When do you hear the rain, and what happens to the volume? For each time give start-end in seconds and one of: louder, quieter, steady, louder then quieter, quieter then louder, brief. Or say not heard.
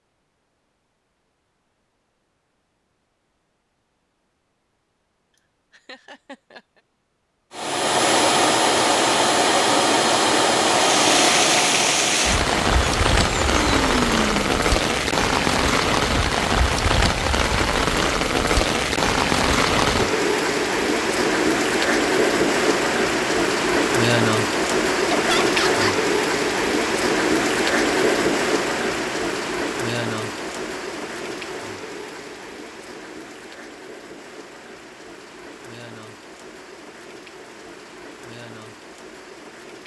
10.8-39.8 quieter.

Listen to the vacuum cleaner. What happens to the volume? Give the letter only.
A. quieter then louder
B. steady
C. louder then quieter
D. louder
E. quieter
E.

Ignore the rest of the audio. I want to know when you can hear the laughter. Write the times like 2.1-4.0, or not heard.
5.7-6.8, 25.1-25.9.